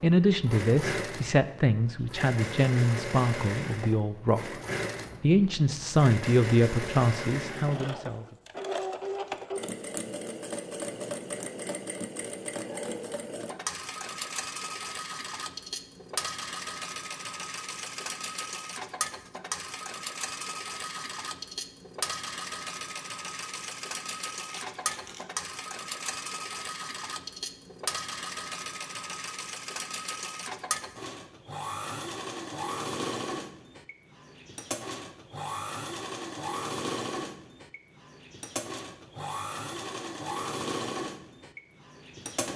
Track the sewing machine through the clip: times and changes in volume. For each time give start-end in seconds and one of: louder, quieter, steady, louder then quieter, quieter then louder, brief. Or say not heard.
0.0-42.5 steady.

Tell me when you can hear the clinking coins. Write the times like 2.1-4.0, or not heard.
24.5-25.2.